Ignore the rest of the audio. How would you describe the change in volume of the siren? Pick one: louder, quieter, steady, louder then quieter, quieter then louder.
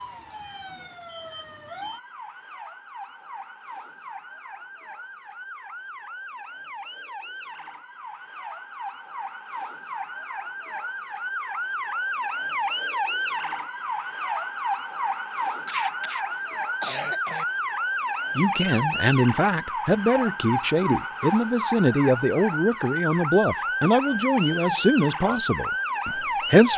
louder.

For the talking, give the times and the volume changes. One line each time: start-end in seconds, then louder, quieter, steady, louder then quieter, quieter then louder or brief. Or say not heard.
18.4-26.7 steady.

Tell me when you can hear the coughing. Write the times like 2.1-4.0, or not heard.
15.7-17.4.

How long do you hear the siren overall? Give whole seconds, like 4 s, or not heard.
27 s.